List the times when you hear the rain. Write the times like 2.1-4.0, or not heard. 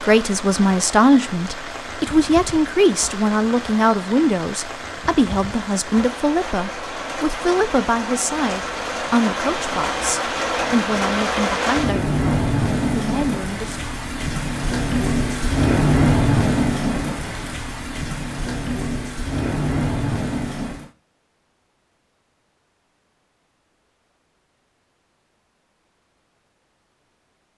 0.0-20.9.